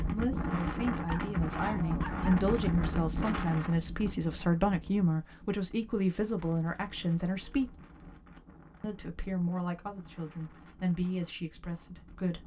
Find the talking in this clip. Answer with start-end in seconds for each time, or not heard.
0.0-7.7, 8.8-12.4.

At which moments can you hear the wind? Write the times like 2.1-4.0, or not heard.
0.0-12.4.